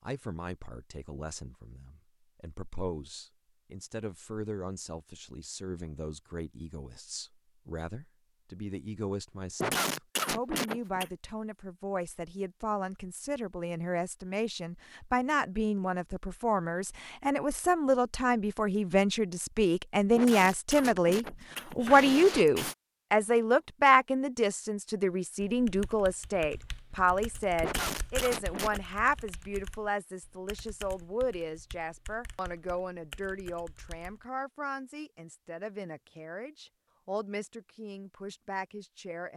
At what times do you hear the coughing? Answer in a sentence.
The coughing can be heard from 9.6 to 11.1 s, from 20.1 to 22.8 s and from 27.6 to 28.8 s.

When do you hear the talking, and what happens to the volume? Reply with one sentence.
The talking can be heard from 0.0 to 39.3 s, getting louder then quieter.